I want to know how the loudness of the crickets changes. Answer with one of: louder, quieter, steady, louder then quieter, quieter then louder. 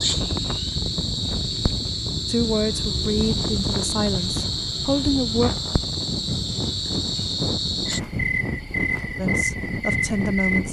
steady.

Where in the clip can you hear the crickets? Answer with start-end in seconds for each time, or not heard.
0.0-10.6.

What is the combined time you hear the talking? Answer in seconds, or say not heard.
5 s.